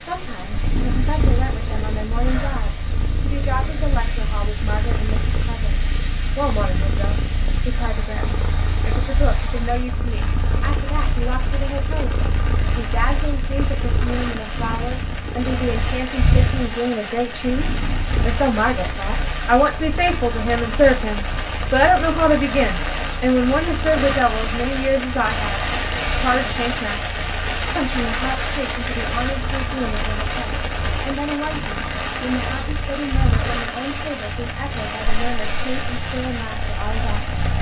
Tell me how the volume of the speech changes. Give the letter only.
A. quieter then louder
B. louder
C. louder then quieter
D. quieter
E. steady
C.